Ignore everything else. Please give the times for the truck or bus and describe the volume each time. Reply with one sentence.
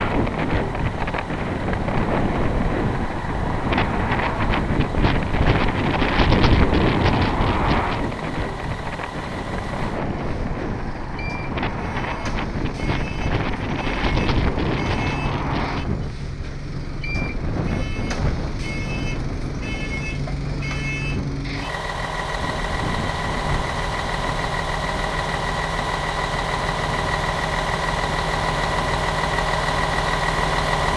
You can hear the truck or bus from 0.0 to 30.9 s, getting louder.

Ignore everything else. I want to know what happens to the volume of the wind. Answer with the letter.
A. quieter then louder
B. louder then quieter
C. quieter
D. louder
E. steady
C.